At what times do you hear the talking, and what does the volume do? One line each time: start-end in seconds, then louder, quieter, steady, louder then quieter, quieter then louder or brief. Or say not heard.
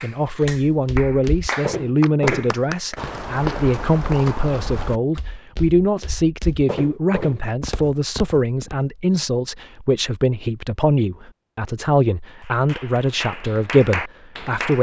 0.0-14.7 steady.